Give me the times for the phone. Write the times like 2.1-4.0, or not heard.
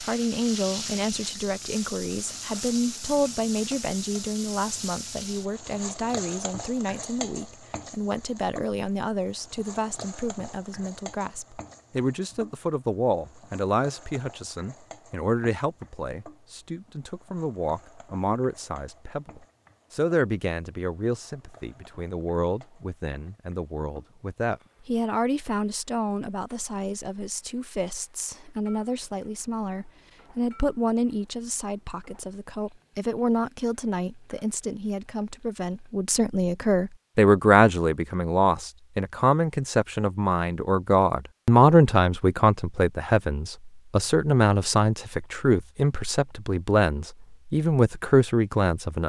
not heard.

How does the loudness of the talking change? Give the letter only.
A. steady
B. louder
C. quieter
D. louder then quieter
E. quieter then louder
B.